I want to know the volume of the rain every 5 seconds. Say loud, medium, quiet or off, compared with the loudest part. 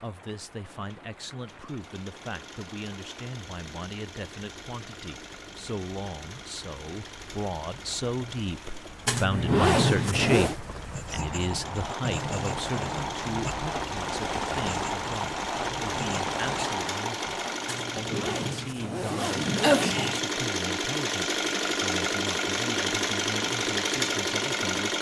quiet, quiet, loud, loud, off.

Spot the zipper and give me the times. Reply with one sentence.
The zipper can be heard from 9.1 to 10.6 s and from 17.6 to 20.2 s.